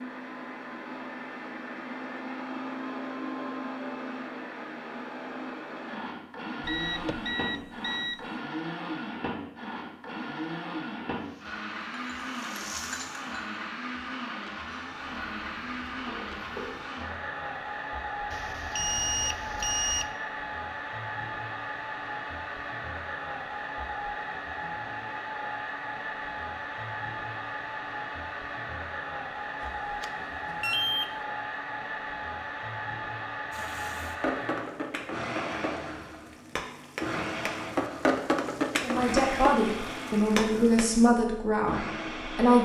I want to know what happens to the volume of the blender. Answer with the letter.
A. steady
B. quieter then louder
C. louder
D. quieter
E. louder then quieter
A.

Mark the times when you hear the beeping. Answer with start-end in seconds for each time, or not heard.
6.6-8.3, 18.3-20.1, 29.6-31.2.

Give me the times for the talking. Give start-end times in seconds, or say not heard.
38.8-42.6.